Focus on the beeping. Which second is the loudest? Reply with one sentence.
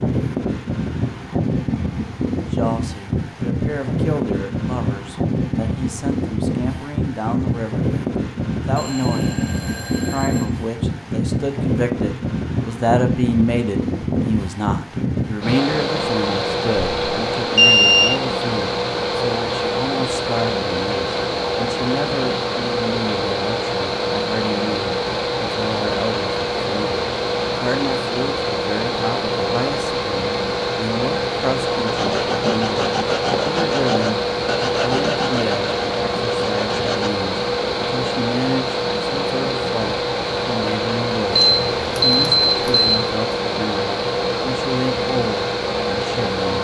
The volume of the beeping peaks at 18 seconds.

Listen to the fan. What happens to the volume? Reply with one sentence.
The loudness of the fan stays about the same.